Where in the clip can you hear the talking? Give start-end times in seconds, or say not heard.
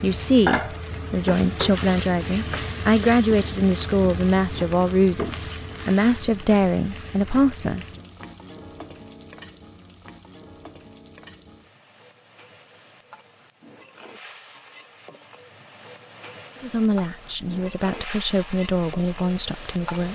0.0-7.9, 16.6-20.0.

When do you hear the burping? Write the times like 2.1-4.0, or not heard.
not heard.